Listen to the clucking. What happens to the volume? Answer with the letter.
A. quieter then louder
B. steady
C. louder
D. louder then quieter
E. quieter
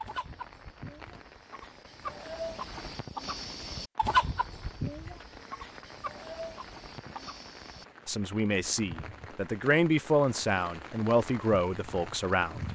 D.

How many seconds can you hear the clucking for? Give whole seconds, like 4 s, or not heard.
8 s.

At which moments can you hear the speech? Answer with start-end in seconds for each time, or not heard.
8.1-12.6.